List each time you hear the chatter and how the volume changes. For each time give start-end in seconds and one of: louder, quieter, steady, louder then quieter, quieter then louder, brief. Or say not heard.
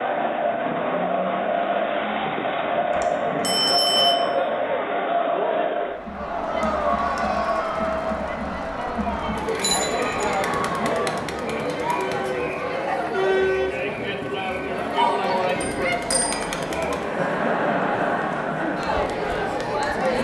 0.0-20.1 steady.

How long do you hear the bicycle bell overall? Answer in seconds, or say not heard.
3 s.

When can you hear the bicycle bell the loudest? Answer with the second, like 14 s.
4 s.